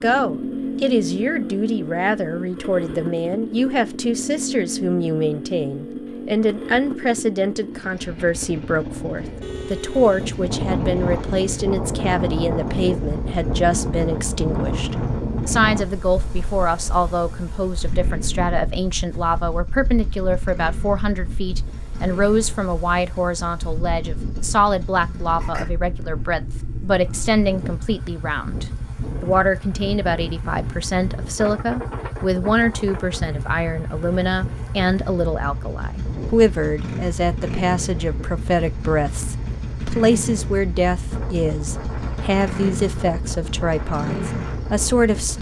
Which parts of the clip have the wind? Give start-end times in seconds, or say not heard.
9.9-45.3.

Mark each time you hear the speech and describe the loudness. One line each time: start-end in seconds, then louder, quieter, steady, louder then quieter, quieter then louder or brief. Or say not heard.
0.0-45.3 steady.